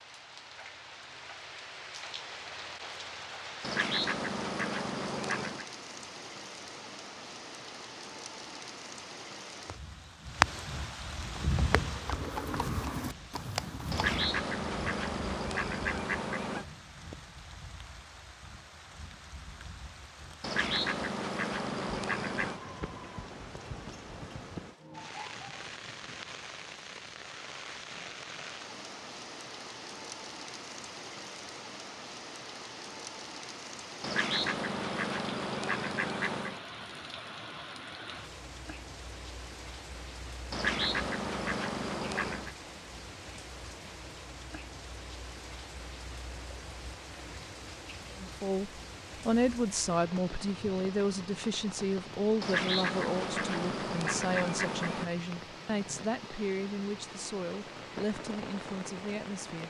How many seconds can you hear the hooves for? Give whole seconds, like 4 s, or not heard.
3 s.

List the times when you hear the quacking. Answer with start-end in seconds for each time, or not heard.
3.6-5.7, 13.9-16.6, 20.4-22.6, 34.0-36.6, 40.5-42.5, 52.4-55.1.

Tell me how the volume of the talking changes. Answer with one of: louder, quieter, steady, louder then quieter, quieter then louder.
quieter.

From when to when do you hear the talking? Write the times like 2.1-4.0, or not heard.
48.1-59.6.